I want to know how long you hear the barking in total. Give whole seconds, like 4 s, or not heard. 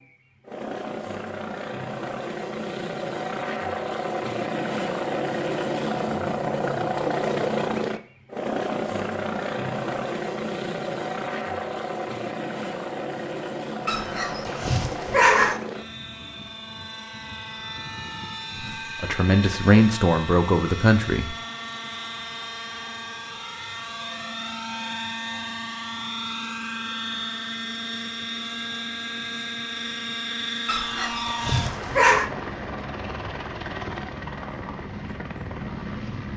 3 s.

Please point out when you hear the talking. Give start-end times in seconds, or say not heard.
19.0-21.4.